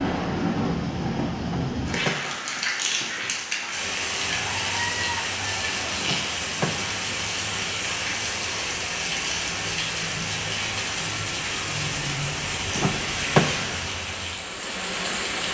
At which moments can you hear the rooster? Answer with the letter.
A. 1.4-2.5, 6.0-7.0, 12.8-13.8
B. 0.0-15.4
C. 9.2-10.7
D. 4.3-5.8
D.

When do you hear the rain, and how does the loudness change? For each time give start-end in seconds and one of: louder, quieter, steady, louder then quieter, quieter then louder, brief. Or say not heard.
0.0-15.4 steady.